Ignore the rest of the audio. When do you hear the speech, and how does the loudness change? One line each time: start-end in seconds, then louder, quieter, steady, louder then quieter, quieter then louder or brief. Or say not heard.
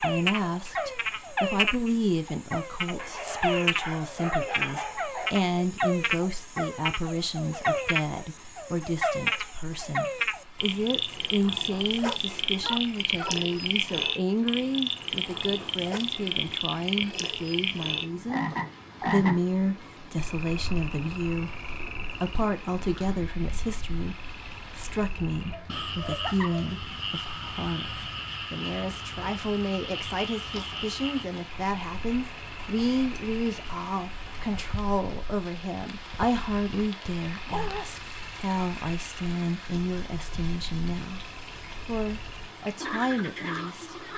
0.0-44.0 steady.